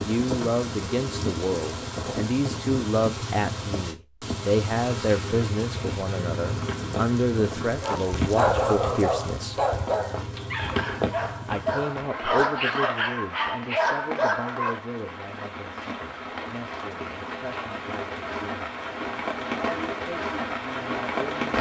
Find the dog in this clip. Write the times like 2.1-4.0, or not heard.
7.8-14.8.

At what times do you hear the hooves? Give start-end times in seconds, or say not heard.
6.5-12.4.